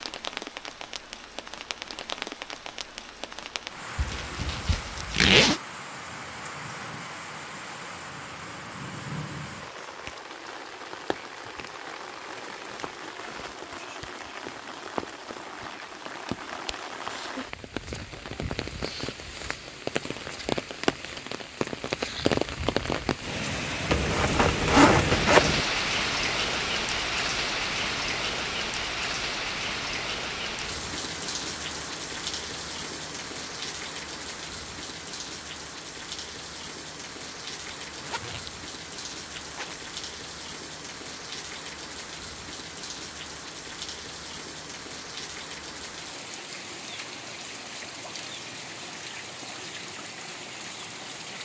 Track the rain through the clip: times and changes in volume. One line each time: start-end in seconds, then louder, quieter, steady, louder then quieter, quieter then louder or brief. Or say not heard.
0.0-51.4 louder then quieter.